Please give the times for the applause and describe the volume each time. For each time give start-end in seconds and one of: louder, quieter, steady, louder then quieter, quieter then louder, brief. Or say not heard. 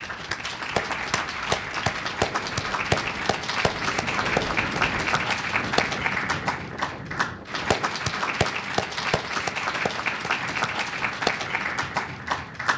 0.0-12.7 steady.